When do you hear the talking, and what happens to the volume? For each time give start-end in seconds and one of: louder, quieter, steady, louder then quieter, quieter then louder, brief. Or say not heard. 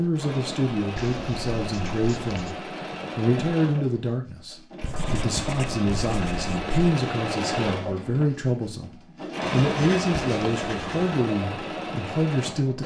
0.0-12.8 steady.